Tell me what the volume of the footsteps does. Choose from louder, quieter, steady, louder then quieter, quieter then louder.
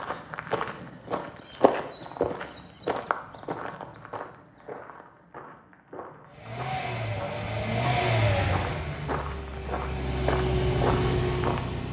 quieter then louder.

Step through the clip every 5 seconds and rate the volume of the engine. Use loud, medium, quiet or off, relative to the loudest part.
off, loud, loud.